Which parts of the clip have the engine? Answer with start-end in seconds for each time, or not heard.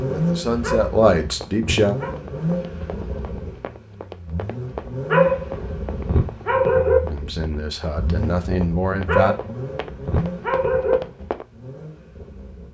0.0-12.6.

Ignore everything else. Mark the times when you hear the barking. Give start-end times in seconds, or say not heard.
0.6-2.2, 5.1-7.0, 9.1-11.0.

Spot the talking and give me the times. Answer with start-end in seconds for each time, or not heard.
0.0-1.9, 7.1-9.3.